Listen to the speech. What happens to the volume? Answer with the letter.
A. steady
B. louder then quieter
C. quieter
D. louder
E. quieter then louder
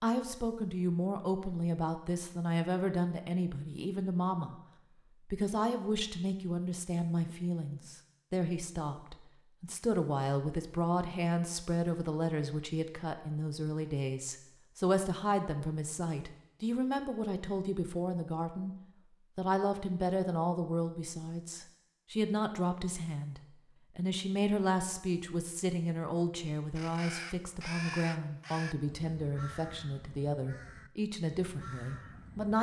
A.